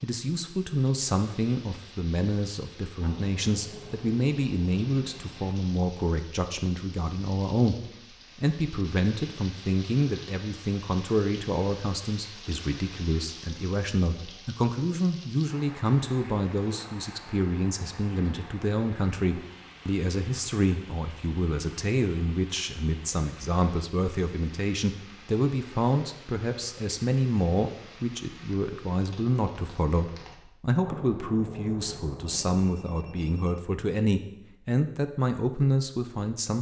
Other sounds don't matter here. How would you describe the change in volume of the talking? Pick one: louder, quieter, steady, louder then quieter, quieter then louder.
steady.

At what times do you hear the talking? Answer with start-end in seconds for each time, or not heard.
0.0-36.5.